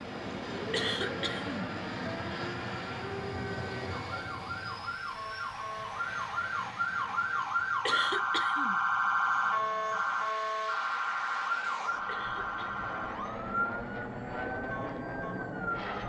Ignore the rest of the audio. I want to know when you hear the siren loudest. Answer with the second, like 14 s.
9 s.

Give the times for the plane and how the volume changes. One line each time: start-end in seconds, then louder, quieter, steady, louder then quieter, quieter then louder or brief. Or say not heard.
0.0-16.0 quieter then louder.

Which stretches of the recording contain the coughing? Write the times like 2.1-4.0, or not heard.
0.7-1.6, 7.8-8.8, 12.1-12.8.